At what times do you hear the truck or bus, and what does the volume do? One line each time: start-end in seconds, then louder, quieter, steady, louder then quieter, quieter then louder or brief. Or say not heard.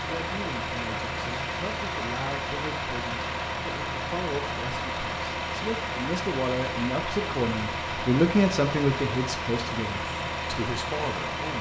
0.0-11.5 steady.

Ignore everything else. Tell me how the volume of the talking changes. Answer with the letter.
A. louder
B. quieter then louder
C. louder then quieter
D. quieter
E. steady
C.